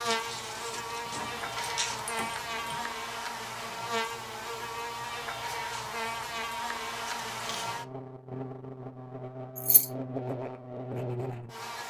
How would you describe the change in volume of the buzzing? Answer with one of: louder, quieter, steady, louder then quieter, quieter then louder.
steady.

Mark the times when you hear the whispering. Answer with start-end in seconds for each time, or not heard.
not heard.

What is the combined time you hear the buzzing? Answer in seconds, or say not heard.
12 s.